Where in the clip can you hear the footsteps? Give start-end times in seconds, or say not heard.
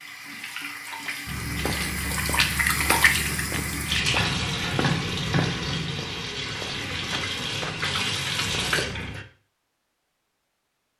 1.2-9.2.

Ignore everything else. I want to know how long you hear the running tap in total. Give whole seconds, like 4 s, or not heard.
9 s.